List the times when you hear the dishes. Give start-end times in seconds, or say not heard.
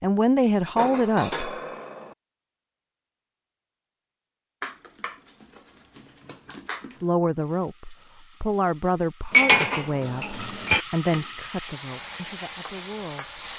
0.8-2.1, 4.6-7.0, 9.3-10.8.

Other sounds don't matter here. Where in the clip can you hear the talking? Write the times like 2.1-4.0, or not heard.
0.0-1.5, 6.9-13.5.